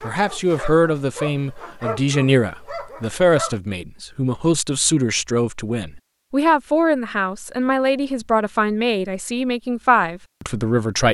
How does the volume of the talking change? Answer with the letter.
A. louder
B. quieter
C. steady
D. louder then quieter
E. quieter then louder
C.